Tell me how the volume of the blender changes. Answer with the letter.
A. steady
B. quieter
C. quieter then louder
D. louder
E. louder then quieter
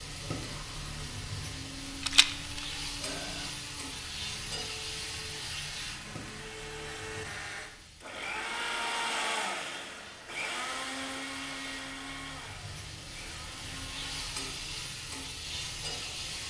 E.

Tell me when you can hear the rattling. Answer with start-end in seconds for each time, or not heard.
2.0-2.8.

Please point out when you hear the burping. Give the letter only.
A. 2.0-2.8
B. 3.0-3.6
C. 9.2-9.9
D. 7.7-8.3
B.